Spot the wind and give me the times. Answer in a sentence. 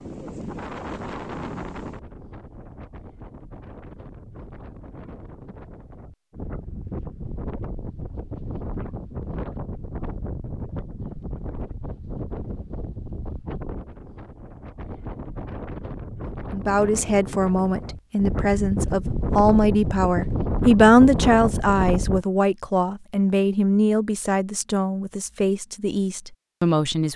The wind can be heard from 0.0 to 22.2 s.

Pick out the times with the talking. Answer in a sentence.
The talking can be heard from 16.5 to 27.1 s.